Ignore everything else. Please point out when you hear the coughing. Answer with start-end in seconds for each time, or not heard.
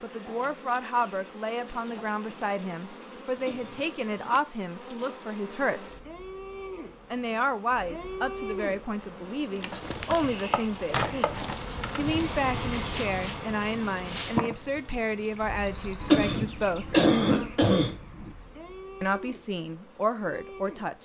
3.4-4.5, 16.0-18.3.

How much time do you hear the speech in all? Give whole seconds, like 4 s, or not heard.
18 s.